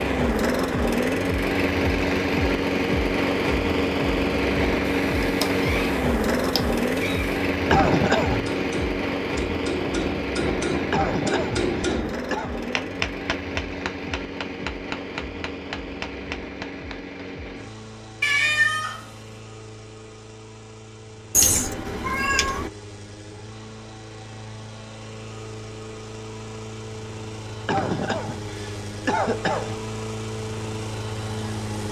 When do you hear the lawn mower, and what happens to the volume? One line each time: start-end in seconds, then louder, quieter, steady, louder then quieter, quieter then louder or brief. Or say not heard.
0.0-31.8 quieter then louder.